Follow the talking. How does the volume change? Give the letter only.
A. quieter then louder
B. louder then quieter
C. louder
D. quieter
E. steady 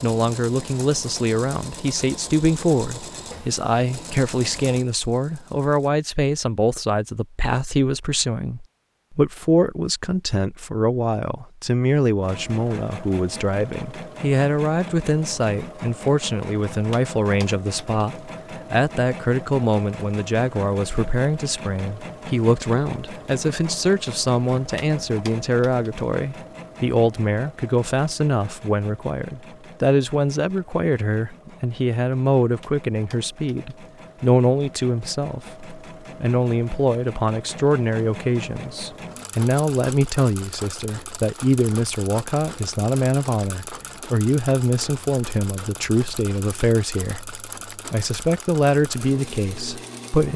E.